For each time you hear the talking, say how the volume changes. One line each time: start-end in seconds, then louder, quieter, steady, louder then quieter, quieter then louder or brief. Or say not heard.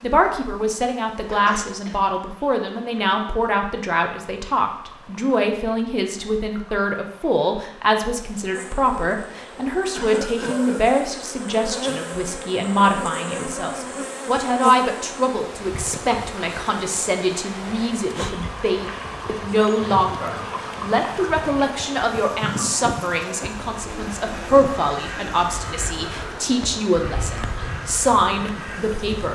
0.0-29.3 steady.